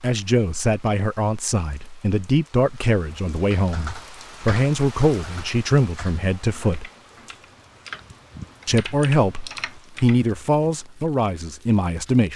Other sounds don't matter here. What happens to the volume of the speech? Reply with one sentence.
The loudness of the speech stays about the same.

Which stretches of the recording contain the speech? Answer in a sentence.
The speech can be heard from 0.0 to 6.9 s and from 8.7 to 12.3 s.